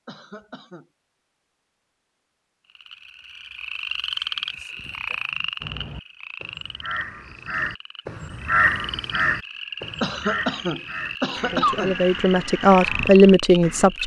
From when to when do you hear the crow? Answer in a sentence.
You can hear the crow from 5.6 to 13.9 s.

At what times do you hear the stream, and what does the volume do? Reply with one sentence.
You can't hear the stream here.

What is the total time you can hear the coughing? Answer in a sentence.
The coughing can be heard for 3 seconds in total.